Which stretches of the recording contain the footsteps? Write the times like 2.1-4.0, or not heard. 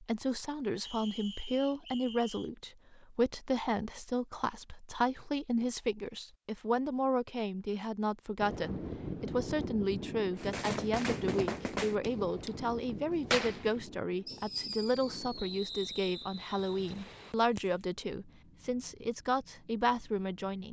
not heard.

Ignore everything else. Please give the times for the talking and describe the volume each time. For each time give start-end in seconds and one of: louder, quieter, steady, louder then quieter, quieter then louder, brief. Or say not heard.
0.0-20.6 steady.